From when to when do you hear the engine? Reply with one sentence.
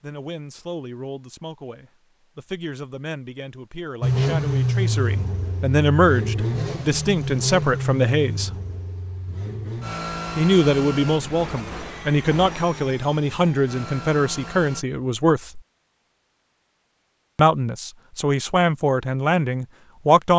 The engine can be heard from 4.0 to 14.8 s.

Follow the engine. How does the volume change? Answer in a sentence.
The volume of the engine goes down.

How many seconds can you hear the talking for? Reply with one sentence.
The talking can be heard for 17 seconds in total.